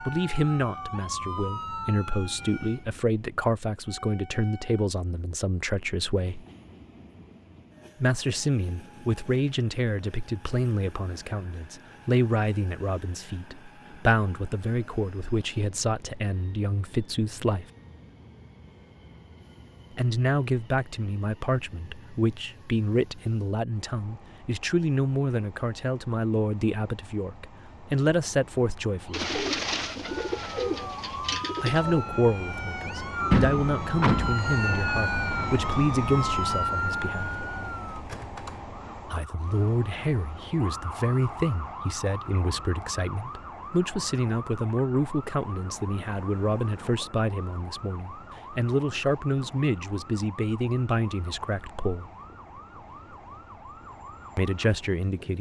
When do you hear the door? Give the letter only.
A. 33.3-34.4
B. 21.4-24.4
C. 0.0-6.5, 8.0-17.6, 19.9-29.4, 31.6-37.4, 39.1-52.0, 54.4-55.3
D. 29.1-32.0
A.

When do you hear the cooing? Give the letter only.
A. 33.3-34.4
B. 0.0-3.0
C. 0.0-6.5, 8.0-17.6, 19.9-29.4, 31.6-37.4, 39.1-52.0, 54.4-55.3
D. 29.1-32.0
D.